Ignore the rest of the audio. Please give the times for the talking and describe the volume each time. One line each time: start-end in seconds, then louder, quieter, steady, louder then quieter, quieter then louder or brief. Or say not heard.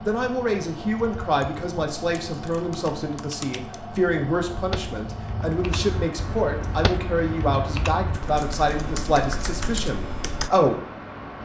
0.0-10.8 steady.